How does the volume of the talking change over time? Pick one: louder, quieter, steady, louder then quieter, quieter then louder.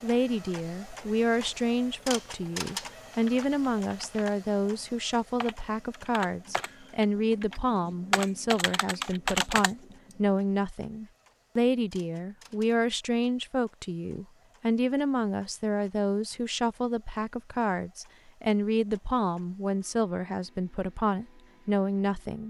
steady.